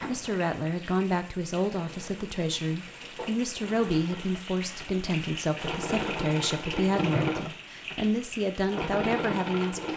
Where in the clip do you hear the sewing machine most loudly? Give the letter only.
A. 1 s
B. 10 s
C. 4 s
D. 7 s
D.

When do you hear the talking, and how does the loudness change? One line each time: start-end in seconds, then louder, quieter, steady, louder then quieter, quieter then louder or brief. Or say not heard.
0.1-9.9 steady.